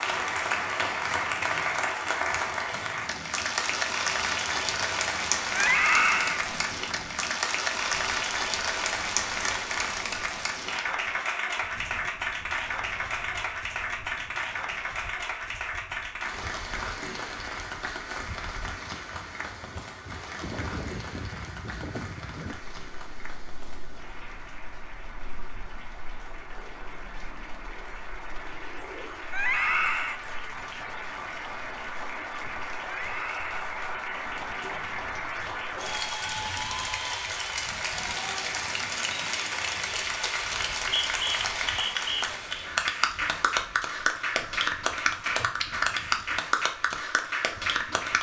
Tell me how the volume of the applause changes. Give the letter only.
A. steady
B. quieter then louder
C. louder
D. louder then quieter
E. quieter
B.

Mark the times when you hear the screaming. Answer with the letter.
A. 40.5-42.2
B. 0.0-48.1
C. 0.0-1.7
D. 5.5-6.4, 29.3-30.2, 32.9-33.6
D.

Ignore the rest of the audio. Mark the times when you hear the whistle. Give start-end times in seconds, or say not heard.
40.5-42.2.